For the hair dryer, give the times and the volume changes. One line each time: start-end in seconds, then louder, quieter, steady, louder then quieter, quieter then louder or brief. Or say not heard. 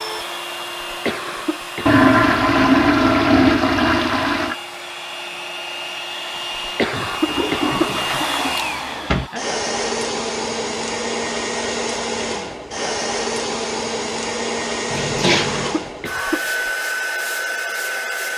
0.0-18.3 louder.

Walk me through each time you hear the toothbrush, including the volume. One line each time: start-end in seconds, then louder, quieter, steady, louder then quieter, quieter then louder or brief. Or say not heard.
not heard.